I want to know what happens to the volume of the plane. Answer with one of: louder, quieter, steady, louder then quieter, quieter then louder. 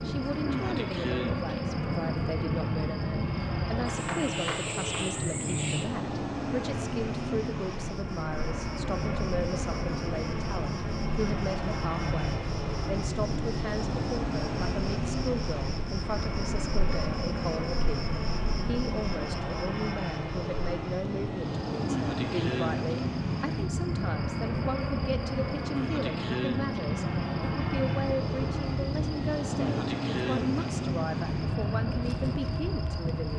steady.